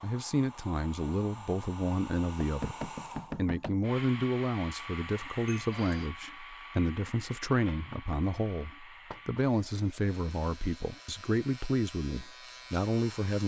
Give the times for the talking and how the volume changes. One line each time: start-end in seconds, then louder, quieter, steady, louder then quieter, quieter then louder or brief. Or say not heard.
0.0-13.4 steady.